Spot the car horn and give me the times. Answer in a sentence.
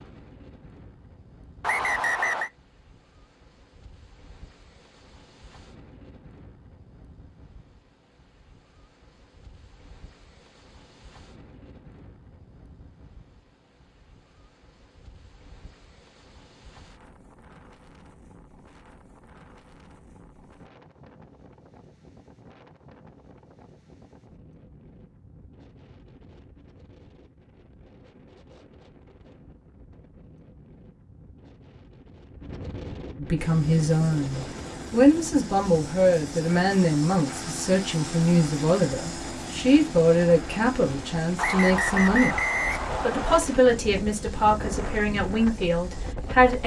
The car horn can't be heard in this clip.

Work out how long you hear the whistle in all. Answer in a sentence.
The whistle can be heard for 3 seconds in total.